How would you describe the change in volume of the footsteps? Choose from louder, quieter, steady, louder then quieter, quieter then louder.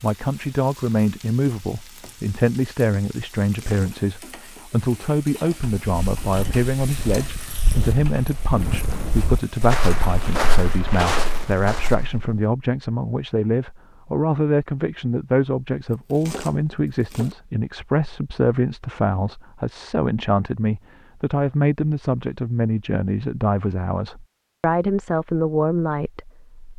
louder.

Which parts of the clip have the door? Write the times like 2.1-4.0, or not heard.
not heard.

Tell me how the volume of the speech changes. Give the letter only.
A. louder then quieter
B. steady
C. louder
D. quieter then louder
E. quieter
B.